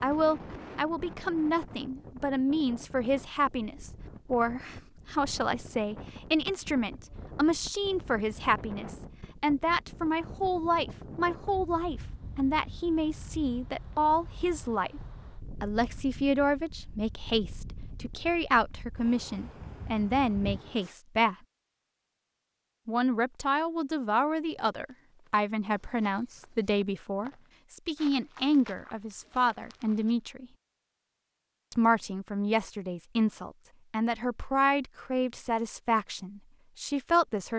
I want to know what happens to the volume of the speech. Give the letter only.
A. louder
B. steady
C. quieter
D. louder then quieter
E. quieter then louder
B.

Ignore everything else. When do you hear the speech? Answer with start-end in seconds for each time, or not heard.
0.0-15.0, 15.6-21.4, 22.9-30.4, 31.7-37.5.